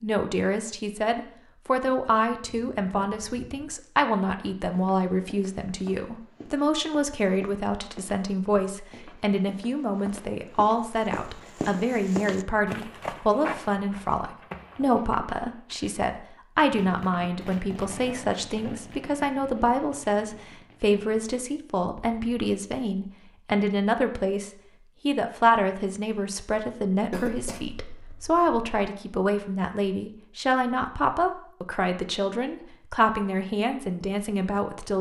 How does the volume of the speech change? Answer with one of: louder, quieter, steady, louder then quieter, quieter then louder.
steady.